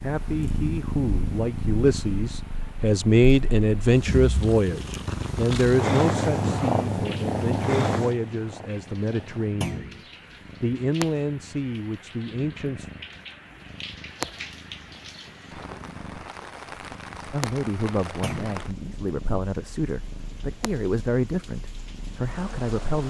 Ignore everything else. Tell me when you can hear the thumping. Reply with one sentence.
The thumping can be heard from 9.6 to 10.1 s and from 18.2 to 18.6 s.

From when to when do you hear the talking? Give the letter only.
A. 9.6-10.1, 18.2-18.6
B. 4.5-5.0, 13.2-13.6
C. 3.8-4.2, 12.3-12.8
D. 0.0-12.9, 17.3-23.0
D.